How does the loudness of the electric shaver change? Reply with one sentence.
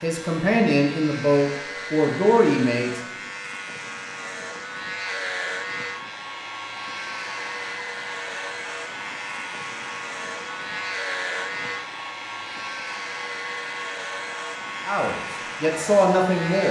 The volume of the electric shaver stays about the same.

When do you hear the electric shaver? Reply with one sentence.
You can hear the electric shaver from 0.0 to 16.6 s.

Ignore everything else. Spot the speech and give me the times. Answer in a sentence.
You can hear the speech from 0.0 to 3.0 s and from 14.8 to 16.6 s.